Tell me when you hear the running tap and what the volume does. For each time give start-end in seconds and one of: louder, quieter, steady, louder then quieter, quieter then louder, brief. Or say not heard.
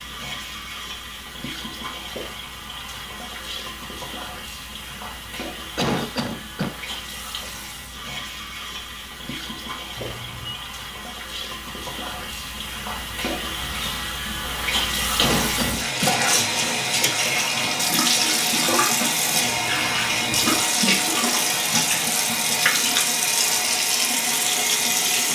0.0-25.3 louder.